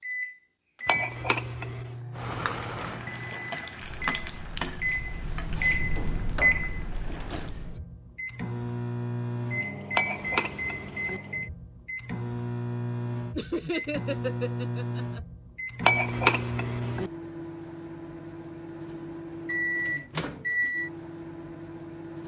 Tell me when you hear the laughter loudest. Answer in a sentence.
The loudest moment of the laughter is at 14 seconds.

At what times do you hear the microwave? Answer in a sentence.
You can hear the microwave from 0.0 to 22.2 s.